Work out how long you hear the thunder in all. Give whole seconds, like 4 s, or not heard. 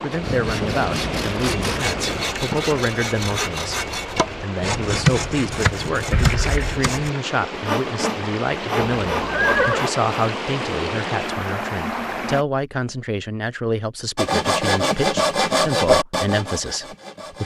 2 s.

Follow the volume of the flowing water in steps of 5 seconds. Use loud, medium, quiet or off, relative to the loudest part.
loud, loud, loud, off.